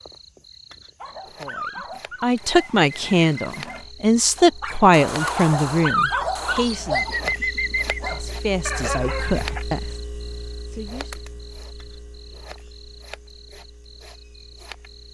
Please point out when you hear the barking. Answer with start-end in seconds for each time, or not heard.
1.0-9.6.